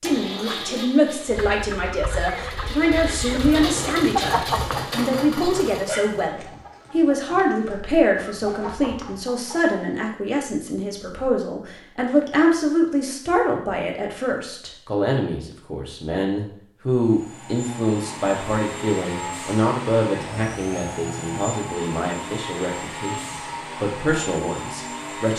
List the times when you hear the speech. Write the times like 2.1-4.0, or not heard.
0.0-25.3.